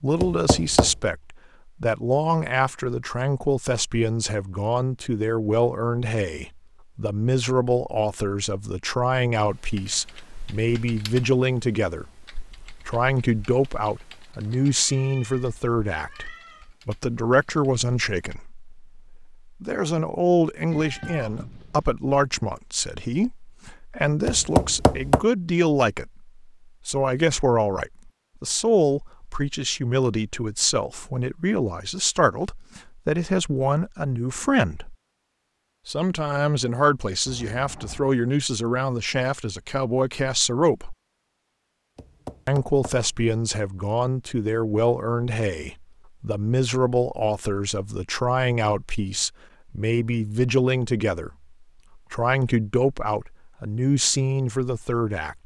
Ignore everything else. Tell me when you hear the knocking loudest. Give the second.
25 s.